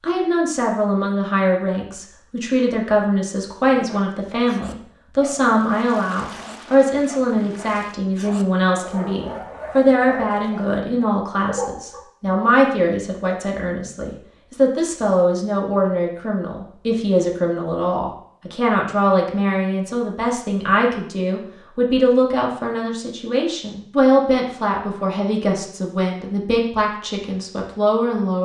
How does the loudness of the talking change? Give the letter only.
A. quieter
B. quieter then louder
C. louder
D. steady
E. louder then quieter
D.